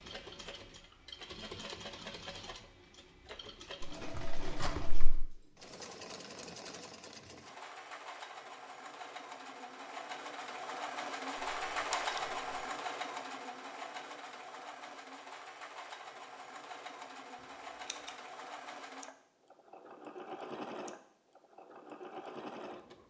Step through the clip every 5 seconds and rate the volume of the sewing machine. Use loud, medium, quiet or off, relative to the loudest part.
medium, medium, loud, medium, medium.